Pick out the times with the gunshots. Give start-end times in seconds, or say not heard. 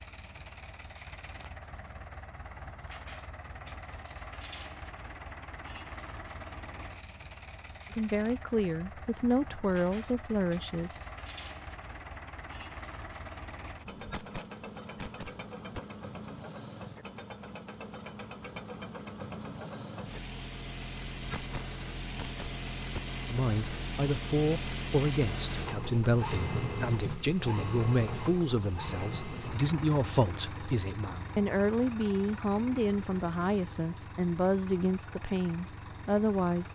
13.9-15.8, 21.1-23.0.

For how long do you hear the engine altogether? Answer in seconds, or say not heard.
37 s.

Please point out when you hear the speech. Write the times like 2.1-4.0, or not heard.
7.9-10.9, 23.3-36.7.